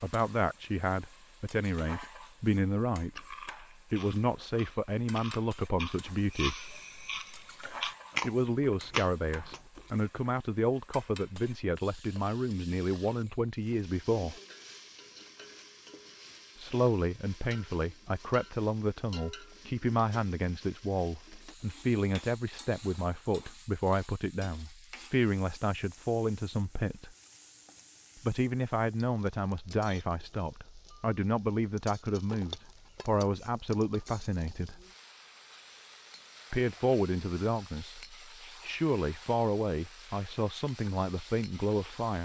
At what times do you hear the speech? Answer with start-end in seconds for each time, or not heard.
0.0-6.6, 8.2-14.3, 16.6-27.1, 28.2-34.8, 36.5-42.2.